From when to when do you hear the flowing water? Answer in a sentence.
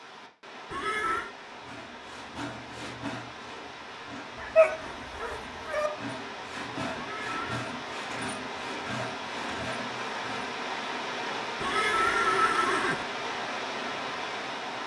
You can hear the flowing water from 0.0 to 14.8 s.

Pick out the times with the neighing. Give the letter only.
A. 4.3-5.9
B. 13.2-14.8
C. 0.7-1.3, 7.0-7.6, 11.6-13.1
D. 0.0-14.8
C.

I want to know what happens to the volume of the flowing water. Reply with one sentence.
The loudness of the flowing water goes up.